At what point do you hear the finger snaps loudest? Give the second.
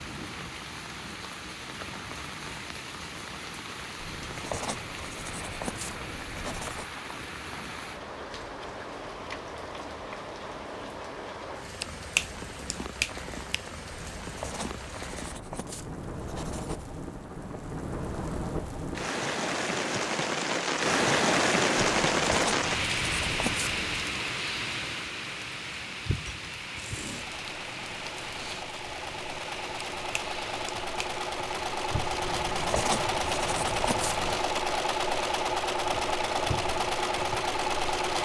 12 s.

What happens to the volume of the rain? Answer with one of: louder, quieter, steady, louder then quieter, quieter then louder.
louder then quieter.